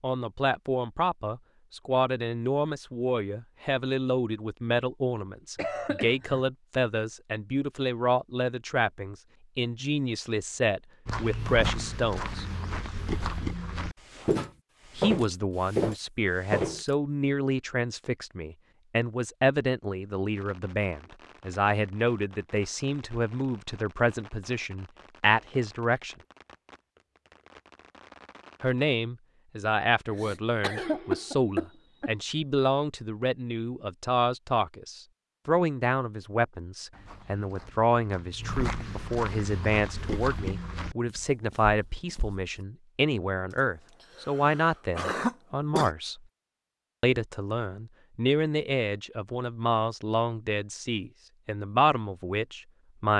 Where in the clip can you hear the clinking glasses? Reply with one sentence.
You can't hear the clinking glasses here.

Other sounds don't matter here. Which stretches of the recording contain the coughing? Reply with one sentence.
The coughing can be heard from 5.5 to 6.4 s, from 30.1 to 32.1 s and from 44.0 to 45.9 s.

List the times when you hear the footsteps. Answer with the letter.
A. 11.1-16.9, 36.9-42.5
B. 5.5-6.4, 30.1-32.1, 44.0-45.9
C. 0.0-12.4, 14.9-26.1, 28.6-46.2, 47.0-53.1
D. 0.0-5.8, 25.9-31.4
A.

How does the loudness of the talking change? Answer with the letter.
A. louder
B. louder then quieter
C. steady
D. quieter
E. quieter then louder
C.